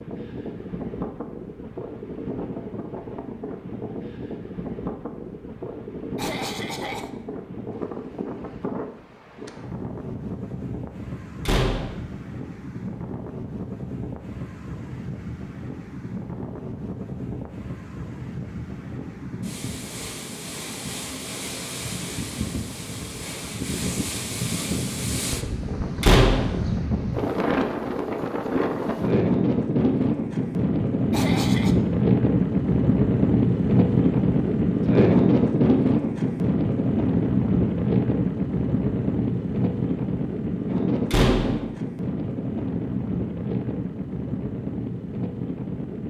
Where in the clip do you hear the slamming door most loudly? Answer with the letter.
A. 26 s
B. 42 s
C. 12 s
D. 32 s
A.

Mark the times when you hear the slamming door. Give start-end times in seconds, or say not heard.
11.4-12.0, 26.0-26.6, 41.1-41.6.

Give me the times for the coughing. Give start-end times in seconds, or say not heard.
6.2-7.1, 31.1-31.8.